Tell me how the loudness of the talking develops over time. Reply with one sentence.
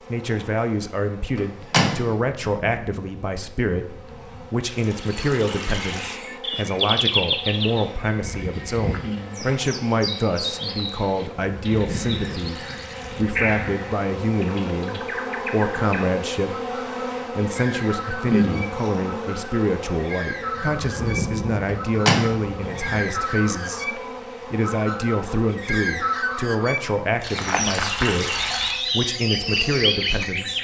The loudness of the talking stays about the same.